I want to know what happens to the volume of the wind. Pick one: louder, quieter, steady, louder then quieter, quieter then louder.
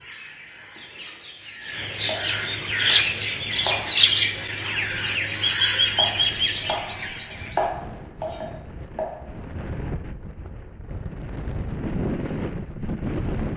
louder.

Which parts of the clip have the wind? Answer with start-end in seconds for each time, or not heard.
2.9-13.5.